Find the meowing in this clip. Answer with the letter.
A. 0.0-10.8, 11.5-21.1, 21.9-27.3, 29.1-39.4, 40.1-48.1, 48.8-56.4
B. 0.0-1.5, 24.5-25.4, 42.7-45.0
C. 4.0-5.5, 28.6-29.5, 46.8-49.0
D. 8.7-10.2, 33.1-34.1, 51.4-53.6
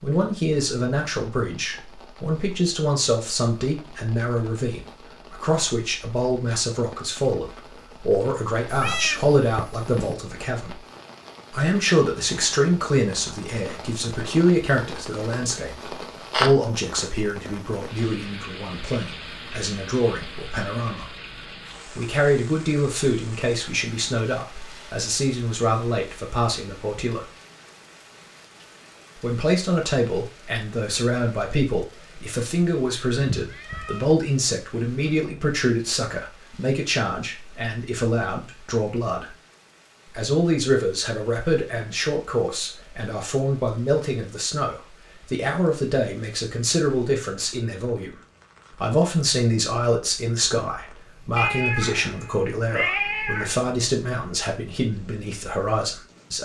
D.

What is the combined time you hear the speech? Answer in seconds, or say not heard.
52 s.